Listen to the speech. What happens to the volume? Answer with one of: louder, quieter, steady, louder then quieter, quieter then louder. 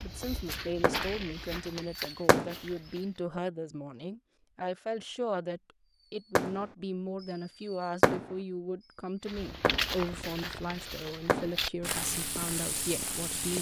steady.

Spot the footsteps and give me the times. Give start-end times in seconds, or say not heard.
0.0-3.2, 9.2-13.5.